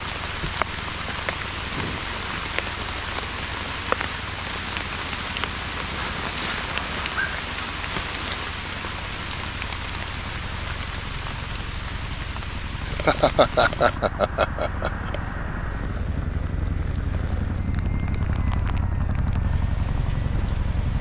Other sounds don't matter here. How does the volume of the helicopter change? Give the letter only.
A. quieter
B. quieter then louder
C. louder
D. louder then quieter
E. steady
C.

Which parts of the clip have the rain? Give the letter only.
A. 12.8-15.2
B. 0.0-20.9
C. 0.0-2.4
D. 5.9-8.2
B.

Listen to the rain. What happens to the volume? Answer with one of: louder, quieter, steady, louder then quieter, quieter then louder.
quieter.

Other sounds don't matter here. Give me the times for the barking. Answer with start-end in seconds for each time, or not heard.
6.0-7.5.